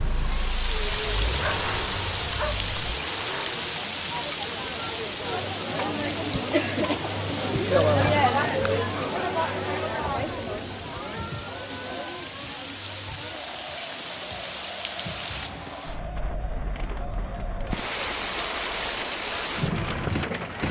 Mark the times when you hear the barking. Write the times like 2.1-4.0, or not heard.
0.9-2.9.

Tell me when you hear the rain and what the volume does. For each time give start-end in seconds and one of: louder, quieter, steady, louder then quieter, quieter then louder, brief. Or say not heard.
0.0-20.6 quieter then louder.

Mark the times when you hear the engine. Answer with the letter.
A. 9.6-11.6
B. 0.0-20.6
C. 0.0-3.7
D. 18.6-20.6
C.